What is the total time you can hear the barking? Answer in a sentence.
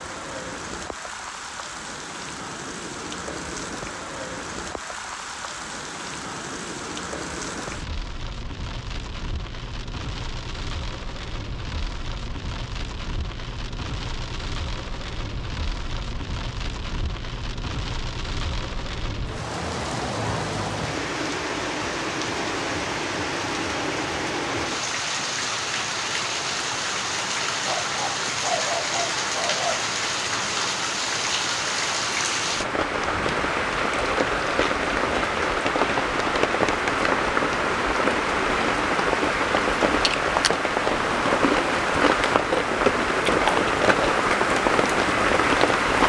You can hear the barking for 2 seconds altogether.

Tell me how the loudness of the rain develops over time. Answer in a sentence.
The loudness of the rain goes up.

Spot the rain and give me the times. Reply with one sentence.
The rain can be heard from 0.0 to 46.0 s.